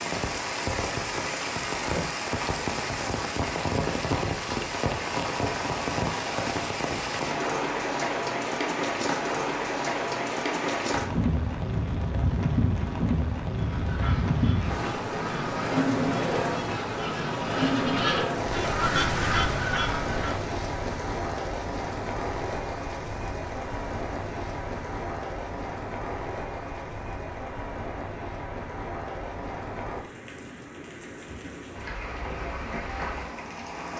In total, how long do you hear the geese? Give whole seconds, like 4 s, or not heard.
7 s.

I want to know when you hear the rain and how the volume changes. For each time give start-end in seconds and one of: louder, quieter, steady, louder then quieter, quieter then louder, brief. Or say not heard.
0.0-33.9 quieter.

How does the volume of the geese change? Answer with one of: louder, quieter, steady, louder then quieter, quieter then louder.
louder.